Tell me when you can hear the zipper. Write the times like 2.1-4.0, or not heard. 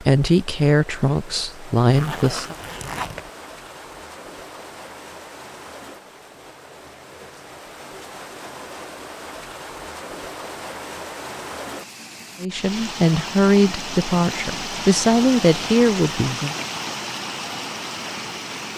1.9-3.3.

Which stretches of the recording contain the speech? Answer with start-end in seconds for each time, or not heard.
0.0-2.5, 12.4-16.6.